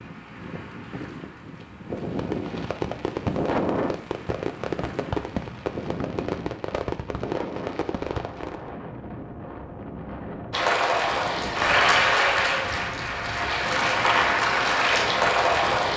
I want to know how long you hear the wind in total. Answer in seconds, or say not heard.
16 s.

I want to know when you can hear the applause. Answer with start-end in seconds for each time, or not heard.
10.5-15.9.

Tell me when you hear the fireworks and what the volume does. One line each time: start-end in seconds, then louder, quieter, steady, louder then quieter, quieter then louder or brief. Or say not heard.
1.9-8.7 steady.